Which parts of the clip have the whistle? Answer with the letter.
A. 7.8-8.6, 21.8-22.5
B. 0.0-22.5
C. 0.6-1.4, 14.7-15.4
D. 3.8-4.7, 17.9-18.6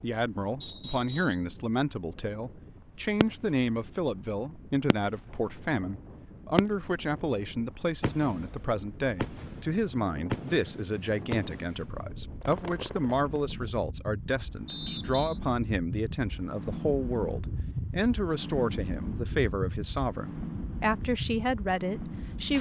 C.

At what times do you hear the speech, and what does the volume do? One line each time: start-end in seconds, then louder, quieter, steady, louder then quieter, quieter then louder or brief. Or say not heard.
0.0-22.5 steady.